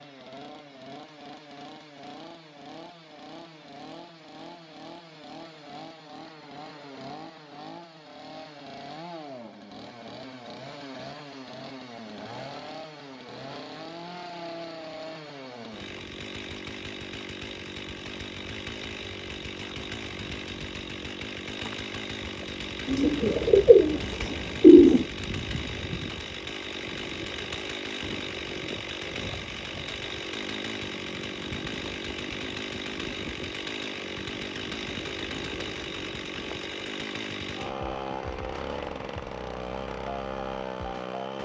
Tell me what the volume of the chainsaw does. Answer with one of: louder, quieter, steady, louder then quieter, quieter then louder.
louder.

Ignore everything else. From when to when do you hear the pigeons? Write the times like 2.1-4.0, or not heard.
22.9-25.1.